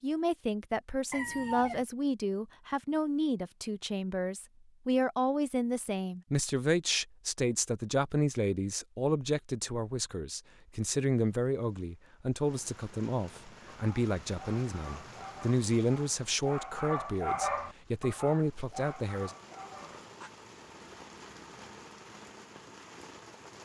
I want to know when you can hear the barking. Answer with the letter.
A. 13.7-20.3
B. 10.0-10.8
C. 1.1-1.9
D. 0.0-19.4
A.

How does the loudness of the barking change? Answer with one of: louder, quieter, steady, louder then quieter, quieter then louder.
louder then quieter.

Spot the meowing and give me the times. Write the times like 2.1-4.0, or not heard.
not heard.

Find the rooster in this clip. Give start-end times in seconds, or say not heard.
1.1-1.9.